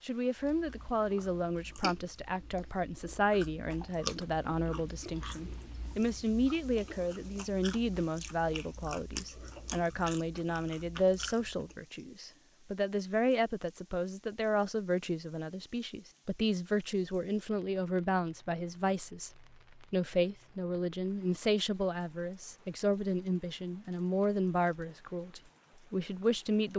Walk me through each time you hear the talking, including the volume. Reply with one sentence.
The talking can be heard from 0.0 to 26.7 s, at a steady volume.